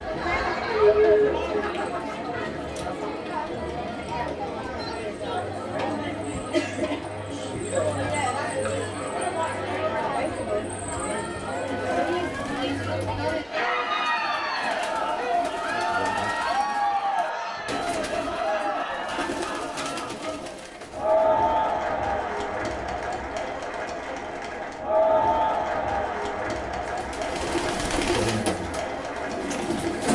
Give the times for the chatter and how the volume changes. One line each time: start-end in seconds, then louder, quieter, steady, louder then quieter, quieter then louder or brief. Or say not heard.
0.0-30.0 steady.